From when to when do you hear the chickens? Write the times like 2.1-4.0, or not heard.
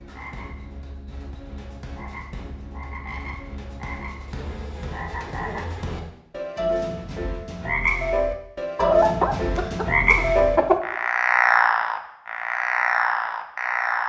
8.8-10.8.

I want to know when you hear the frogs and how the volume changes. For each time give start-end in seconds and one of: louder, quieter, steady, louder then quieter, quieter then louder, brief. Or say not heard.
0.0-14.0 louder.